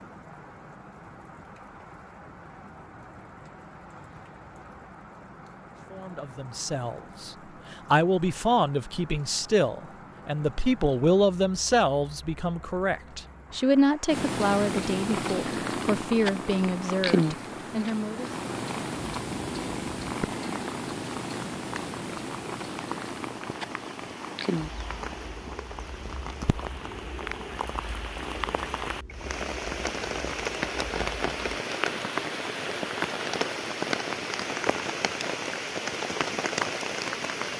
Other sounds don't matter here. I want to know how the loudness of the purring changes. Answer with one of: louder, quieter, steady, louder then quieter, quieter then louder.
quieter.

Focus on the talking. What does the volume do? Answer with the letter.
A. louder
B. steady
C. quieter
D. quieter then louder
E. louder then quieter
B.